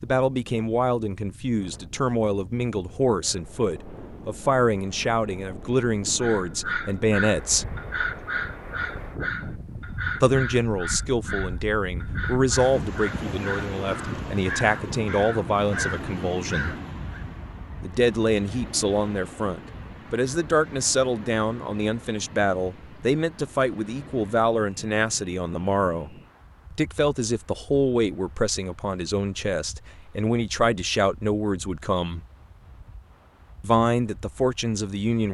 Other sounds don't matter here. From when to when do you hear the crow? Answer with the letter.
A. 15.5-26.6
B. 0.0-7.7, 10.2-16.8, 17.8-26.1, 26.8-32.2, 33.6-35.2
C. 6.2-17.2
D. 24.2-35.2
C.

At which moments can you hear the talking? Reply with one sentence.
The talking can be heard from 0.0 to 7.7 s, from 10.2 to 16.8 s, from 17.8 to 26.1 s, from 26.8 to 32.2 s and from 33.6 to 35.2 s.